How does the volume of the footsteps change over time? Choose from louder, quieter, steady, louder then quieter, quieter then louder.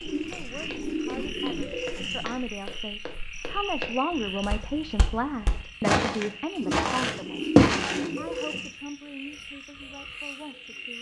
louder.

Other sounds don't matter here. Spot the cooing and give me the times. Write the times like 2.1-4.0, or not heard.
0.0-2.4, 6.5-8.8.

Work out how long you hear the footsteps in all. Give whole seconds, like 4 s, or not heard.
8 s.